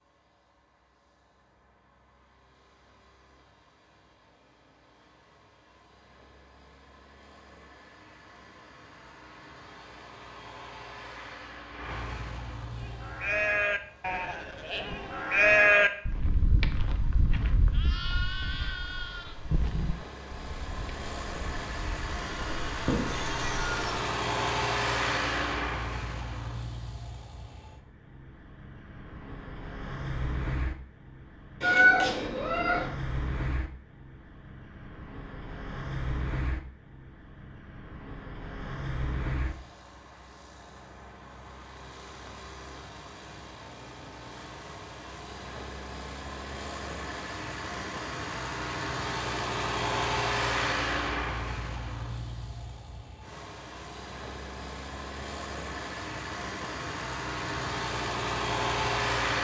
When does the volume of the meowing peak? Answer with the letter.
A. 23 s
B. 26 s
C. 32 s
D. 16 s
C.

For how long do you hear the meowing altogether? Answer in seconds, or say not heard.
3 s.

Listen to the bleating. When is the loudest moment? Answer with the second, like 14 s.
16 s.